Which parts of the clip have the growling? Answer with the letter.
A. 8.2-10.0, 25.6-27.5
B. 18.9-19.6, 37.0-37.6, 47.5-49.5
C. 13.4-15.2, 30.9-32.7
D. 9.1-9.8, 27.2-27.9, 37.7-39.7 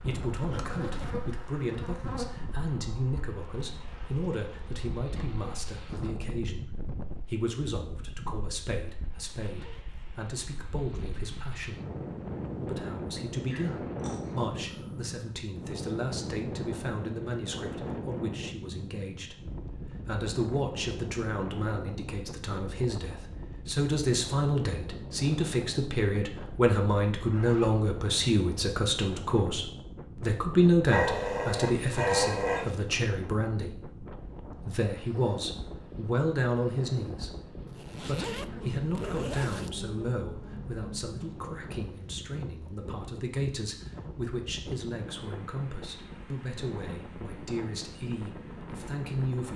C.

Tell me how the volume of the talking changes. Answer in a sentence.
The volume of the talking goes up, then down.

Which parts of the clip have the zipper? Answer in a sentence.
You can hear the zipper from 9.1 to 9.8 s, from 27.2 to 27.9 s and from 37.7 to 39.7 s.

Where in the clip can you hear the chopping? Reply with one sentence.
You can't hear the chopping here.